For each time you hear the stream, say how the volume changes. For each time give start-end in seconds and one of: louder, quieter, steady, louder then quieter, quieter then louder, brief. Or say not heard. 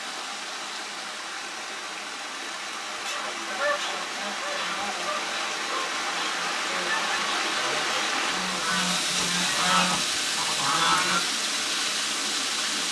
0.0-12.8 louder.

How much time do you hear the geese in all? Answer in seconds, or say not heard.
8 s.